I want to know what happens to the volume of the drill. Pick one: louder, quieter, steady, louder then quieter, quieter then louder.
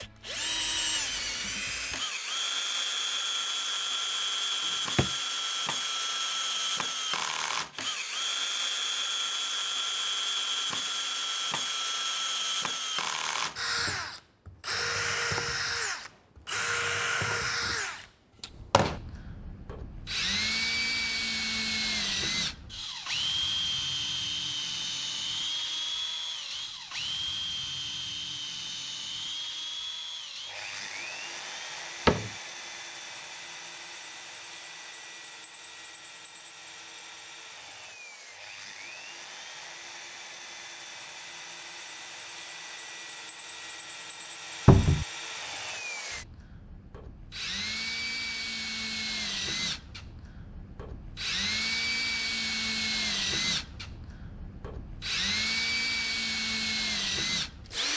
quieter then louder.